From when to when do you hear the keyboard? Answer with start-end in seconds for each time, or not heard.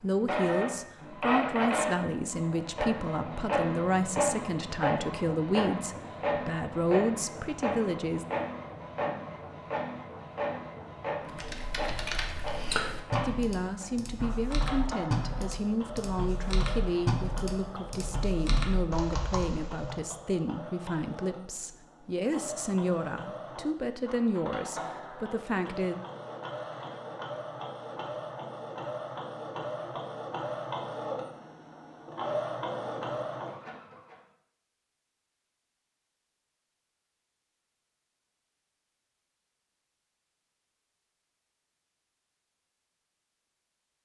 11.2-20.1.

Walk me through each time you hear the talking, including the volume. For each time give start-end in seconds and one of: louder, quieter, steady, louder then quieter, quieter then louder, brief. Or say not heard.
0.0-8.2 steady
13.2-25.9 steady.